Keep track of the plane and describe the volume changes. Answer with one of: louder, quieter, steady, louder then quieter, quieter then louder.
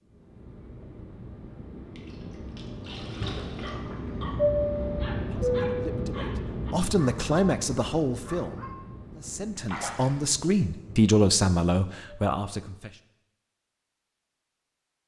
louder then quieter.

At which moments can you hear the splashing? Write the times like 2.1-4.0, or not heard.
1.9-3.8, 9.7-10.2.